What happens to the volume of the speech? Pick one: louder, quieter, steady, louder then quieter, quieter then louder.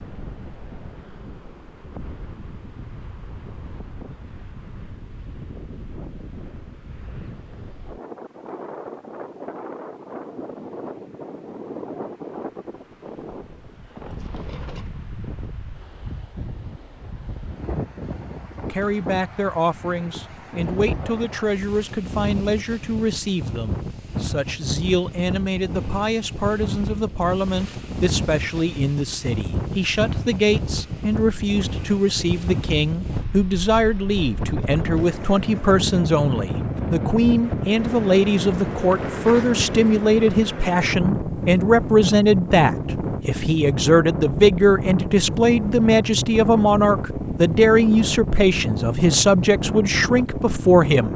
louder.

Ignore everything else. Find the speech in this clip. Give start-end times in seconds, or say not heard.
18.7-51.1.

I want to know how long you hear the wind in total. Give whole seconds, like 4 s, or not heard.
51 s.